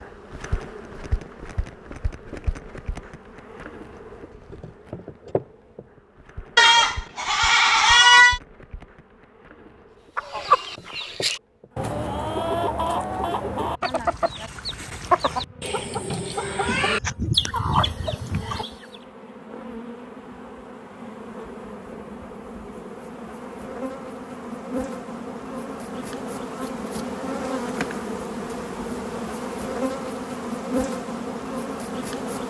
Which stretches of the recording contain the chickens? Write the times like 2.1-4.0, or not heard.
10.2-18.9.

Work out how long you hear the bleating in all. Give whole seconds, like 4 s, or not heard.
4 s.